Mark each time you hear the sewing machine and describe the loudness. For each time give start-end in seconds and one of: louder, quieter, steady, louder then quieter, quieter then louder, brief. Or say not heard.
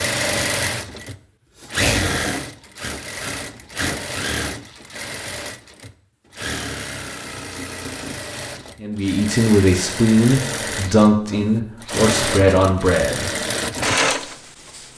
0.0-14.9 quieter then louder.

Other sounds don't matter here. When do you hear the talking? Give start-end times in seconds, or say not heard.
8.8-13.3.